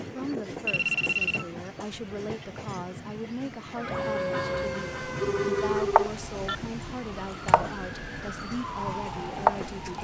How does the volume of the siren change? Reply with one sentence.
The volume of the siren goes down, then up.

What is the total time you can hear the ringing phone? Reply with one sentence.
You can hear the ringing phone for 2 seconds altogether.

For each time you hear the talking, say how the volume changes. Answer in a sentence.
You can hear the talking from 0.0 to 9.9 s, at a steady volume.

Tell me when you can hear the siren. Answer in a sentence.
The siren can be heard from 3.7 to 9.9 s.